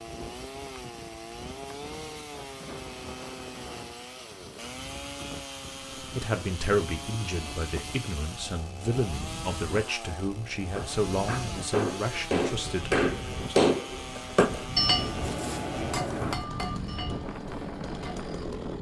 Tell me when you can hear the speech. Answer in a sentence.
You can hear the speech from 6.0 to 13.6 s.